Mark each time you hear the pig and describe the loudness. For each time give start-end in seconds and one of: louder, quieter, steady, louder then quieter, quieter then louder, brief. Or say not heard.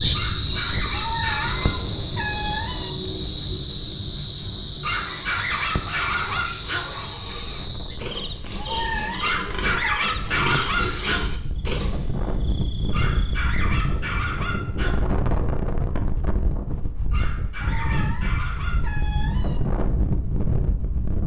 5.0-12.1 louder.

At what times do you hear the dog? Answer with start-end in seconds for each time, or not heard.
0.1-1.8, 4.8-6.8, 9.2-11.2, 12.9-14.9, 17.1-19.0.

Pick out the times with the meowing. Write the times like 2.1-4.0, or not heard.
0.9-2.9, 8.6-10.1, 17.6-19.6.